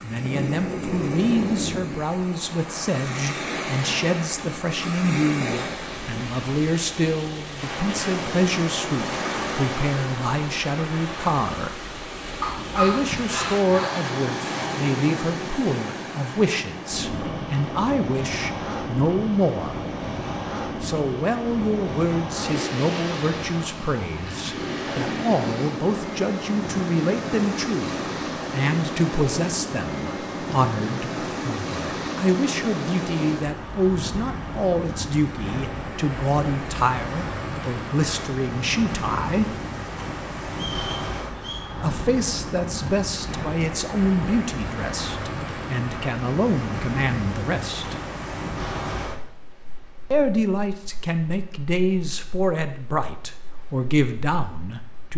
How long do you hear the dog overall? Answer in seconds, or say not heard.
2 s.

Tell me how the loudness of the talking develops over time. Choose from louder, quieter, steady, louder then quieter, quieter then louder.
steady.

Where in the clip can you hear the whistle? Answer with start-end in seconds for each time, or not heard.
40.5-41.6.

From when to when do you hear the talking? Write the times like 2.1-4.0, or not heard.
0.0-11.8, 12.8-19.9, 20.8-39.5, 41.8-48.0, 50.1-55.1.